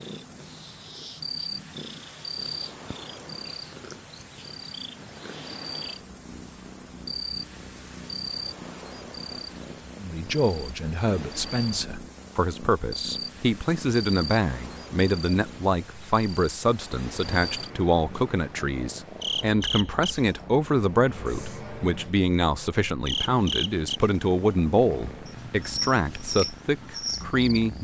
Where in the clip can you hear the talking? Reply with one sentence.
You can hear the talking from 9.9 to 27.8 s.